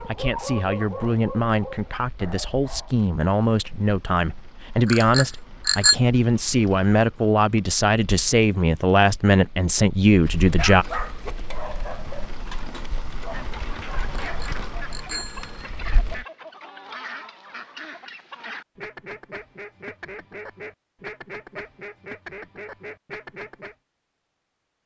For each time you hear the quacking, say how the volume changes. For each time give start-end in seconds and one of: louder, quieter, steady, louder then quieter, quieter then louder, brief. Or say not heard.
13.2-23.8 steady.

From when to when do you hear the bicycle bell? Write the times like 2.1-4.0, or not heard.
4.8-6.0, 14.2-15.7.